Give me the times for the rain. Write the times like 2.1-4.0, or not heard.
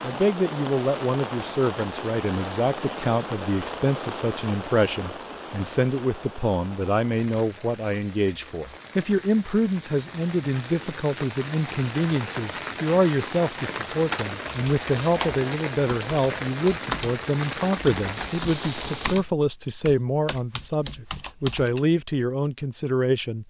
0.0-19.2.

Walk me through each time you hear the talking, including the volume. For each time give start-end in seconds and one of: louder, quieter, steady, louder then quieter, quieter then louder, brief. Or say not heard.
0.0-23.4 steady.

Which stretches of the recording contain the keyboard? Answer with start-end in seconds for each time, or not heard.
14.1-21.9.